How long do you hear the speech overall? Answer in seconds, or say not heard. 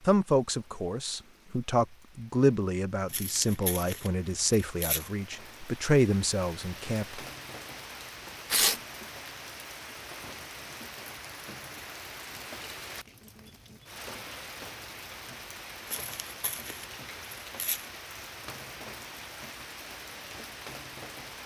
7 s.